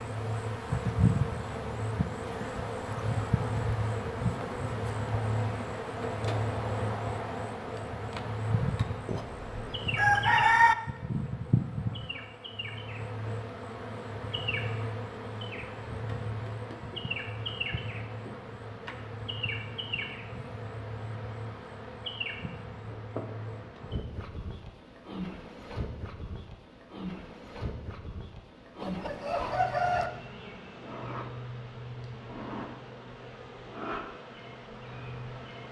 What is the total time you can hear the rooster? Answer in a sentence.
You can hear the rooster for 3 seconds altogether.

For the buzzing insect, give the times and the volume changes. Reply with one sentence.
You can hear the buzzing insect from 0.0 to 35.6 s, getting quieter.